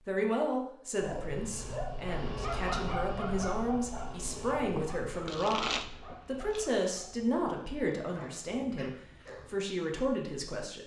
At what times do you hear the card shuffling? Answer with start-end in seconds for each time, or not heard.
4.8-6.8.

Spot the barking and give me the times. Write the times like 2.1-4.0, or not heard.
1.0-9.6.